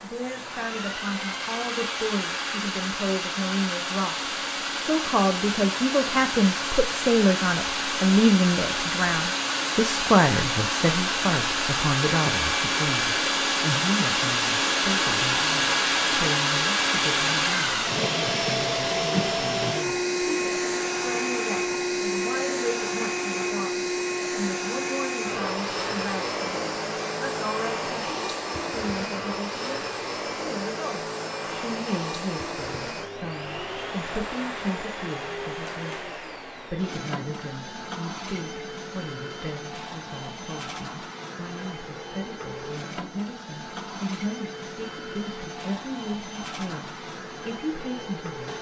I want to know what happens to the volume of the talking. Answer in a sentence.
The volume of the talking goes down.